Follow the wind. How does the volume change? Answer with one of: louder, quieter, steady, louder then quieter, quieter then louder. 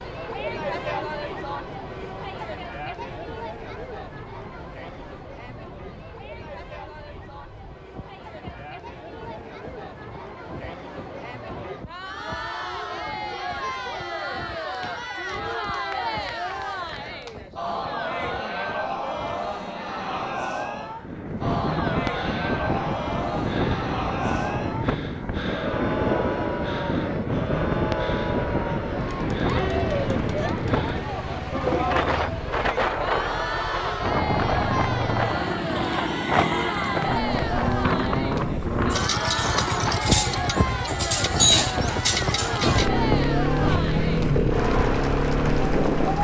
louder.